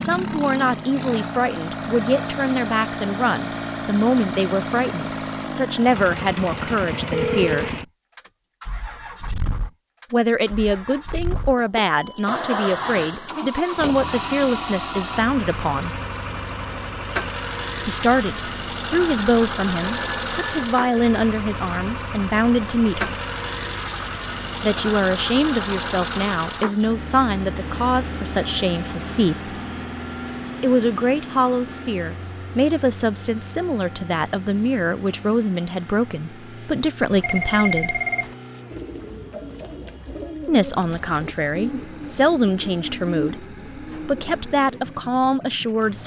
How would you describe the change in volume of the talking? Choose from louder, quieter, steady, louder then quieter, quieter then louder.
steady.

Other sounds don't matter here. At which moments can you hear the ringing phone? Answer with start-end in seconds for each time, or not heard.
7.1-7.7, 20.0-21.2, 37.1-38.4.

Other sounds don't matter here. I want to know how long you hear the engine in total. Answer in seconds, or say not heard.
46 s.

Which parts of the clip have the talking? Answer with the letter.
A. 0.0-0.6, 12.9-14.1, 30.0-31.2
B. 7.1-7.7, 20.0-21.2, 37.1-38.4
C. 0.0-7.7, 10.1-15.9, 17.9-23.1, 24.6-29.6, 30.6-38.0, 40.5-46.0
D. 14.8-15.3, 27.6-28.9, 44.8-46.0
C.